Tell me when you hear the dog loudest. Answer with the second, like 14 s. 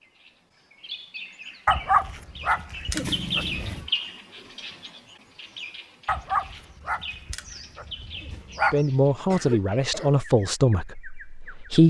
2 s.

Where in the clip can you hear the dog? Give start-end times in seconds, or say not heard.
1.6-3.9, 6.0-8.8.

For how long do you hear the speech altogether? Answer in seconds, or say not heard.
3 s.